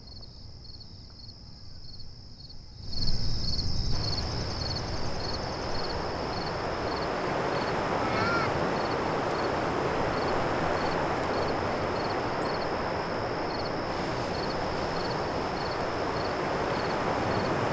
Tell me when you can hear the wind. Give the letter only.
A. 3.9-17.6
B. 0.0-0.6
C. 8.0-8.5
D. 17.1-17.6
A.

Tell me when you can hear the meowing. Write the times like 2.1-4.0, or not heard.
8.0-8.5.